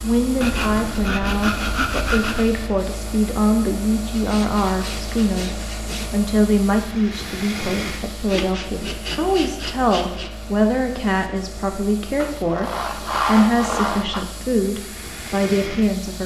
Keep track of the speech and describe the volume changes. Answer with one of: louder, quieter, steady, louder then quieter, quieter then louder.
steady.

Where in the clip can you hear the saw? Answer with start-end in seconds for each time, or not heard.
0.4-2.5, 4.1-6.2, 8.2-10.3, 12.2-14.2.